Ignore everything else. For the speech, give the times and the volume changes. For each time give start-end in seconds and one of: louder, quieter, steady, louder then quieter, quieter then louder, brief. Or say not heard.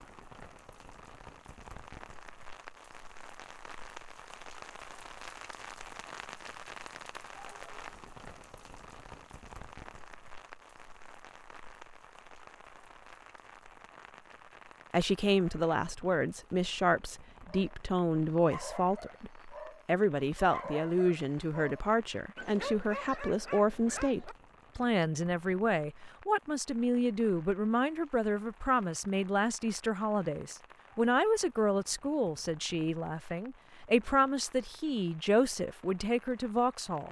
14.9-37.0 steady.